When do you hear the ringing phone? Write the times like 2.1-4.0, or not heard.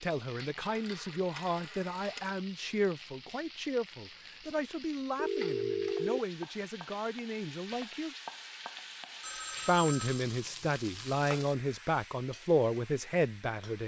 0.6-2.4, 5.2-6.2, 9.2-10.2.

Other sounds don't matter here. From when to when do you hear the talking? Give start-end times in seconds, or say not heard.
0.0-8.2, 9.7-13.8.